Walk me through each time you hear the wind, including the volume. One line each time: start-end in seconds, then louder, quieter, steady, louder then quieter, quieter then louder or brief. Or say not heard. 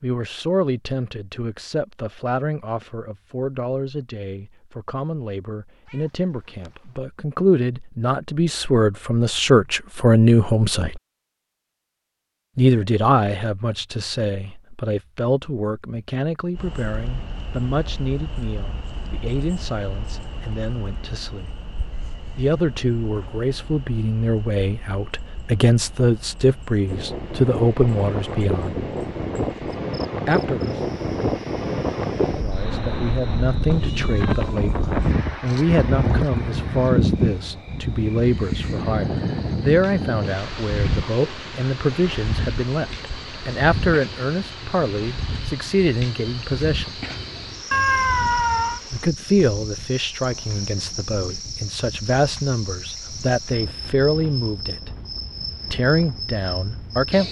26.9-57.1 quieter.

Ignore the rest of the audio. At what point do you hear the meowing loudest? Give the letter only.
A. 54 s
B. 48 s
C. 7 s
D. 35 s
B.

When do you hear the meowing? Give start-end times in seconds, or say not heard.
5.8-7.0, 33.7-35.1, 47.7-48.8.